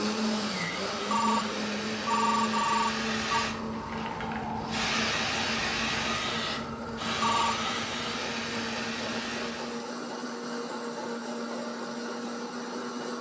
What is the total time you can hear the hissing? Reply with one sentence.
You can hear the hissing for 10 seconds altogether.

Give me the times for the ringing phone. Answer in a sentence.
You can hear the ringing phone from 1.1 to 3.5 s and from 7.2 to 7.7 s.